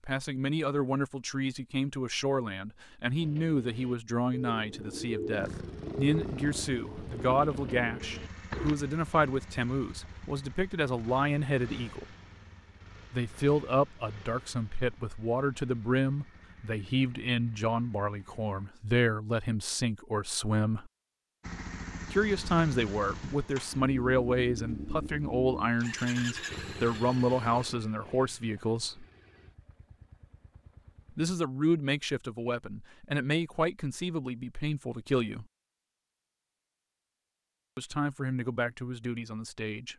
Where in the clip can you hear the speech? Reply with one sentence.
The speech can be heard from 0.0 to 12.1 s, from 13.1 to 20.9 s, from 22.1 to 29.1 s, from 31.1 to 35.5 s and from 37.8 to 39.9 s.